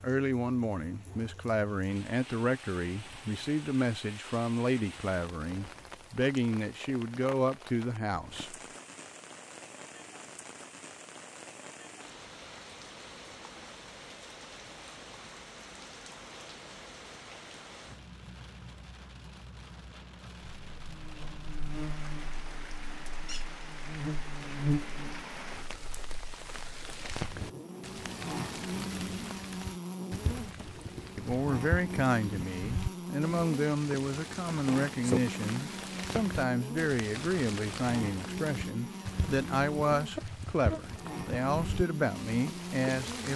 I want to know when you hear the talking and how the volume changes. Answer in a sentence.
You can hear the talking from 0.0 to 8.6 s, at a steady volume; and from 31.1 to 43.3 s, at a steady volume.